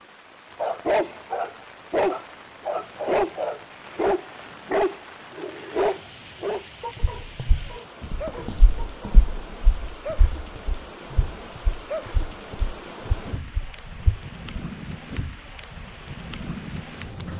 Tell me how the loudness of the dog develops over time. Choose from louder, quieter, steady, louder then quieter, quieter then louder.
quieter.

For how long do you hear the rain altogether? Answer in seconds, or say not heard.
17 s.